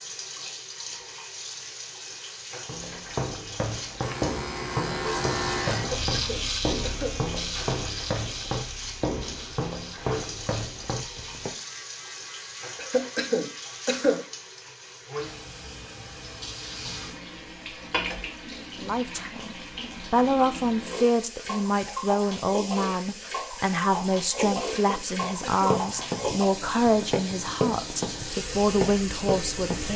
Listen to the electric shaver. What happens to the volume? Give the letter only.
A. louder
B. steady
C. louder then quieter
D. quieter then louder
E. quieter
E.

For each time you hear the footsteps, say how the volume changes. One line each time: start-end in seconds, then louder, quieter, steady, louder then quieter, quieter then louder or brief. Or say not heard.
2.6-11.6 steady
25.2-29.9 steady.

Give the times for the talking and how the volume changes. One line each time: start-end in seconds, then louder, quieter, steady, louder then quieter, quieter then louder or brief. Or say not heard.
18.8-29.9 steady.